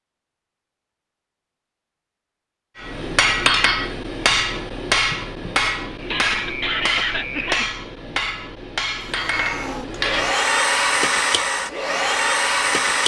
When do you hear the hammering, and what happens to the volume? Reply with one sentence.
You can hear the hammering from 2.8 to 10.3 s, getting quieter.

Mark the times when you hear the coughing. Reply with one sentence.
The coughing can be heard from 6.1 to 7.8 s.